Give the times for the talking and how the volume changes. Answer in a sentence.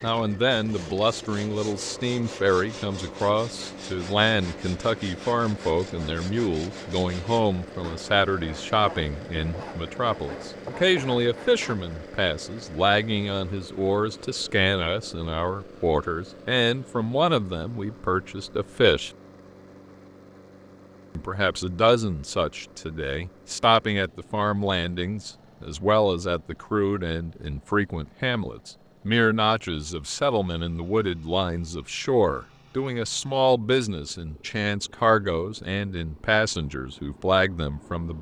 The talking can be heard from 0.0 to 19.1 s, at a steady volume; and from 21.1 to 38.1 s, at a steady volume.